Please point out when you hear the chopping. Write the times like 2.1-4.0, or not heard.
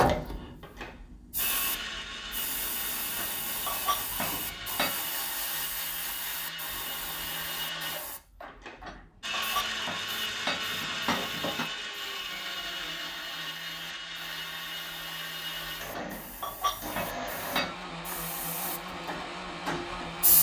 not heard.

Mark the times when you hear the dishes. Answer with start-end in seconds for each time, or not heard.
3.1-5.0, 8.8-11.7, 15.9-17.8.